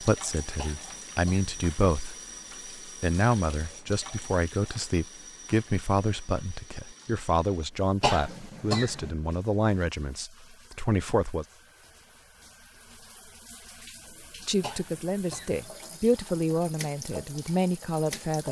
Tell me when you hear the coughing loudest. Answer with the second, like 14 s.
8 s.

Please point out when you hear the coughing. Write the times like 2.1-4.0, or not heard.
0.6-1.5, 8.0-9.1, 14.6-15.7.